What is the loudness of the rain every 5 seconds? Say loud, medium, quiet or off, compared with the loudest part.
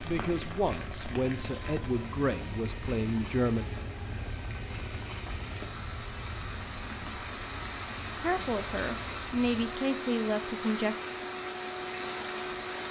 medium, loud, loud.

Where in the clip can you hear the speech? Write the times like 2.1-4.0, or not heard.
0.0-3.6, 8.2-10.9.